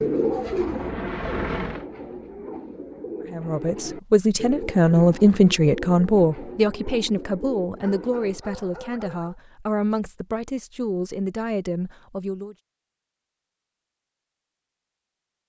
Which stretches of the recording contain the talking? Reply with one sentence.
You can hear the talking from 3.3 to 12.6 s.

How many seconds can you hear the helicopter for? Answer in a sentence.
You can hear the helicopter for 2 seconds altogether.